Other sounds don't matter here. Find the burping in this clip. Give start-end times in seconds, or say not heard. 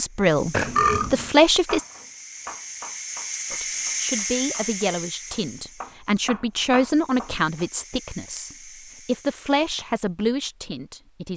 0.5-1.3.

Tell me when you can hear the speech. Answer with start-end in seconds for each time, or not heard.
0.0-1.9, 3.5-11.3.